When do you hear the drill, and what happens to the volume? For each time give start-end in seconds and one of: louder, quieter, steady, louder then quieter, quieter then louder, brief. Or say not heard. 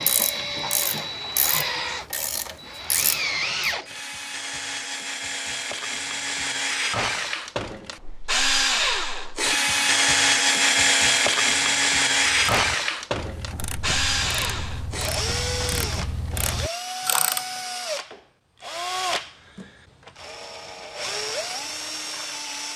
0.0-22.7 louder then quieter.